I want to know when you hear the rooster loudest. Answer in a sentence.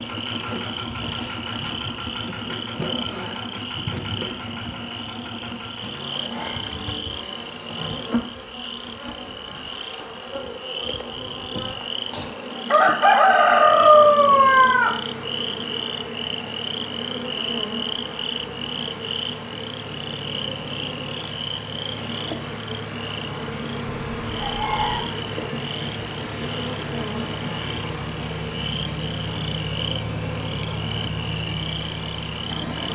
The loudest moment of the rooster is at 14 seconds.